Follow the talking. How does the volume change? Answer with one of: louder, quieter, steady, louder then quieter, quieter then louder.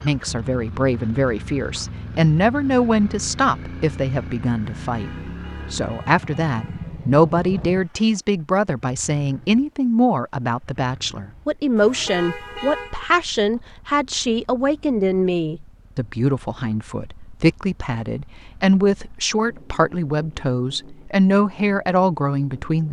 steady.